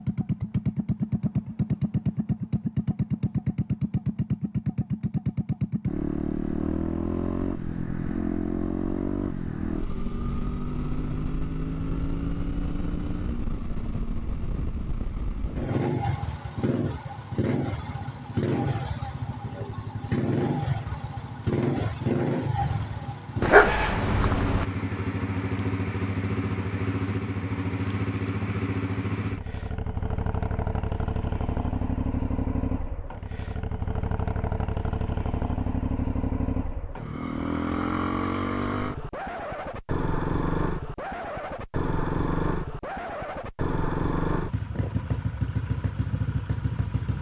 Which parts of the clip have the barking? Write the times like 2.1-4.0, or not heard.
23.4-24.6.